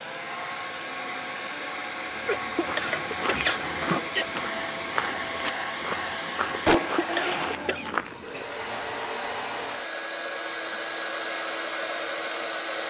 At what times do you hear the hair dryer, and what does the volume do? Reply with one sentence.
You can hear the hair dryer from 0.0 to 12.8 s, at a steady volume.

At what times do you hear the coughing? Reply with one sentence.
The coughing can be heard from 2.2 to 4.2 s and from 6.8 to 7.9 s.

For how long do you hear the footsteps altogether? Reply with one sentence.
The footsteps can be heard for 6 seconds in total.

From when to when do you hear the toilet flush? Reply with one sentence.
The toilet flush can be heard from 2.9 to 4.0 s and from 6.7 to 7.5 s.